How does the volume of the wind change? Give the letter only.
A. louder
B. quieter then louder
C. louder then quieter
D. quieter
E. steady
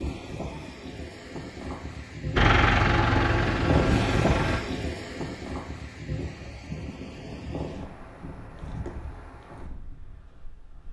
C.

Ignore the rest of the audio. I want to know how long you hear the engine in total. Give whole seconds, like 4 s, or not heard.
2 s.